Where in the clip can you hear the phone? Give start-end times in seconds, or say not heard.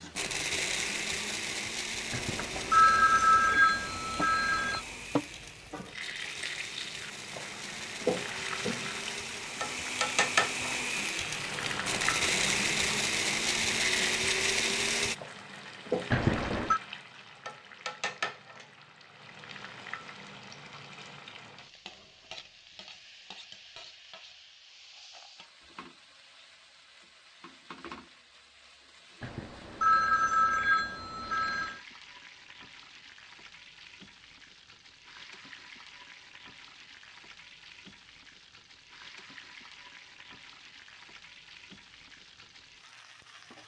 2.1-4.8, 16.1-16.8, 29.2-31.8.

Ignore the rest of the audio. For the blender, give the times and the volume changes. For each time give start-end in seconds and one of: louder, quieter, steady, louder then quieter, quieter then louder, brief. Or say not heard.
0.0-15.2 quieter then louder.